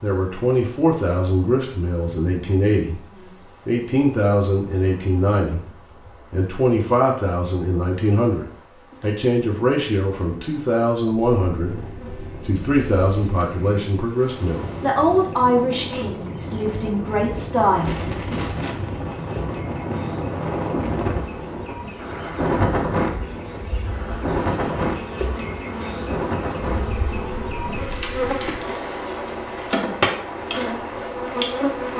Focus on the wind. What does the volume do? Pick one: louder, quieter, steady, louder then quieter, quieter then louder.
louder then quieter.